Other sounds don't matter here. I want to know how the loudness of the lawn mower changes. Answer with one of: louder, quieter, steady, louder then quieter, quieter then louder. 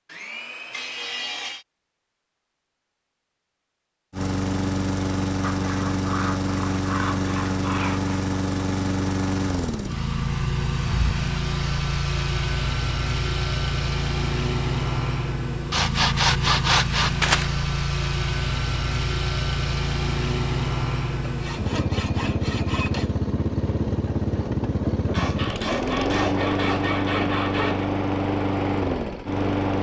steady.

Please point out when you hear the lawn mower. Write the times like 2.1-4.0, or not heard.
4.1-29.7.